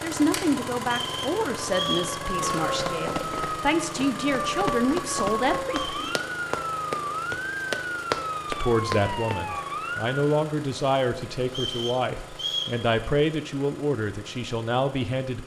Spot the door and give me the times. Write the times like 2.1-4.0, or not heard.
not heard.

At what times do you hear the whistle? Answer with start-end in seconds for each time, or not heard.
0.8-2.1, 5.7-6.2, 11.4-12.8.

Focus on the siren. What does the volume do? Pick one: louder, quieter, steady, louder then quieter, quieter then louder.
steady.